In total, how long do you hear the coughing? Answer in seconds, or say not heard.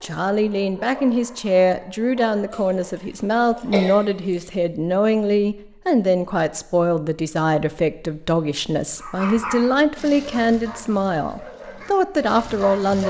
2 s.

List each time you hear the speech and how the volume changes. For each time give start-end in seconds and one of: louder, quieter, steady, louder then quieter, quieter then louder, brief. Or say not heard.
0.0-13.0 steady.